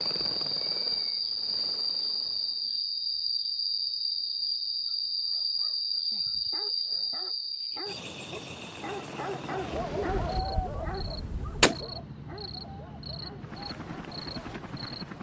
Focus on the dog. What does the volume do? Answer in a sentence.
The volume of the dog goes up, then down.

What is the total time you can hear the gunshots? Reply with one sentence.
You can hear the gunshots for 2 seconds altogether.